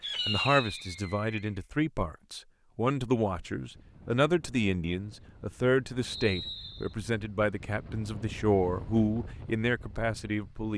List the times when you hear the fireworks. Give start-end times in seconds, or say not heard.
0.0-1.6.